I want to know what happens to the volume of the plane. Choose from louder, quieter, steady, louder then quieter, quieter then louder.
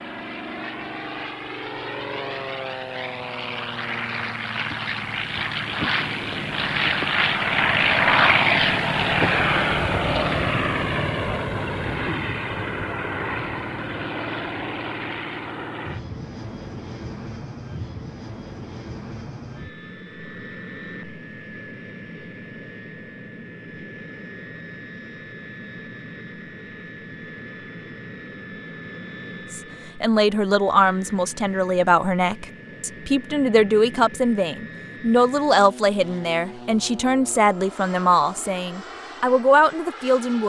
quieter.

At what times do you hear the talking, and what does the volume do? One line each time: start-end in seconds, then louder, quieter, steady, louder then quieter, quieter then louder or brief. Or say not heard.
29.5-40.4 steady.